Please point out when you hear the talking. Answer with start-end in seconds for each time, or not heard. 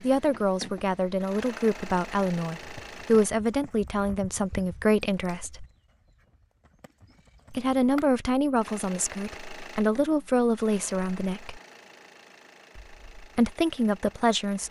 0.0-5.7, 7.5-11.6, 12.8-14.6.